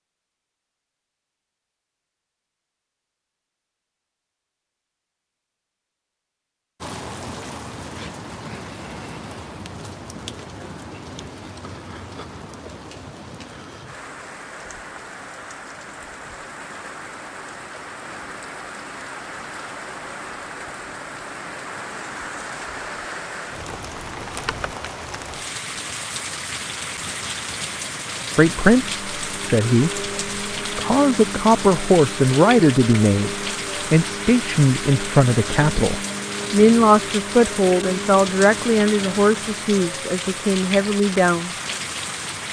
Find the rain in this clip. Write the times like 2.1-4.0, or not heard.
6.8-42.4.